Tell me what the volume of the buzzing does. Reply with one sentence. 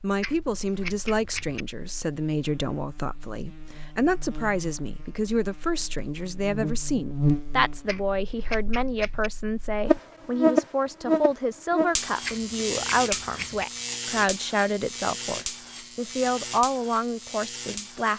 The volume of the buzzing goes up, then down.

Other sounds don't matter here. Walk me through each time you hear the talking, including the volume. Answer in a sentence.
The talking can be heard from 0.0 to 18.1 s, at a steady volume.